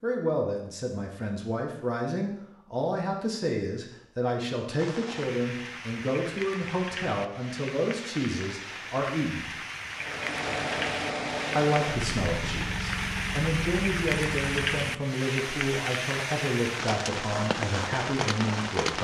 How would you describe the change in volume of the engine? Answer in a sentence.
The volume of the engine goes down.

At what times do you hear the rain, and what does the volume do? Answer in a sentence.
The rain can be heard from 4.8 to 18.9 s, getting louder.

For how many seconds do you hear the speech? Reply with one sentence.
You can hear the speech for 17 seconds altogether.